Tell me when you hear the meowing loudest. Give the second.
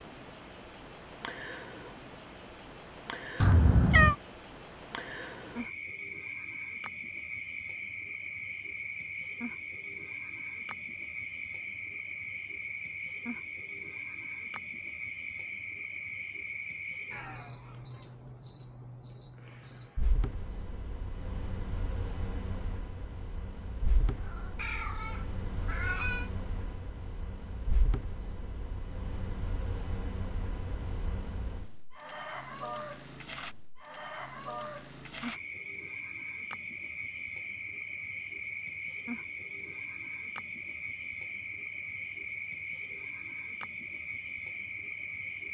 4 s.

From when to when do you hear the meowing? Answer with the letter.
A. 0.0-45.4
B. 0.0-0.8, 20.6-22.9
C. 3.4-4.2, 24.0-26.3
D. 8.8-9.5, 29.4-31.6
C.